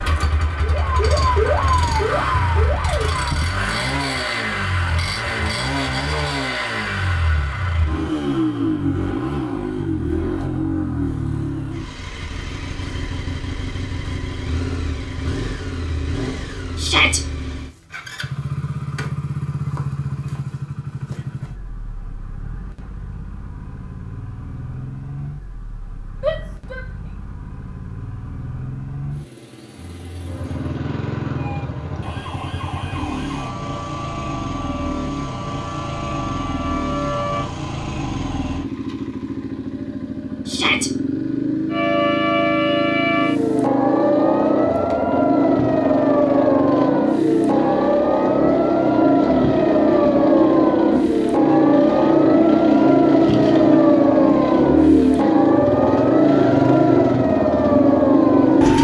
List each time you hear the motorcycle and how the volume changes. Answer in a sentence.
You can hear the motorcycle from 0.0 to 58.7 s, getting quieter then louder.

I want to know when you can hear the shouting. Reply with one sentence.
The shouting can be heard from 16.8 to 17.2 s, from 26.2 to 26.9 s and from 40.5 to 40.9 s.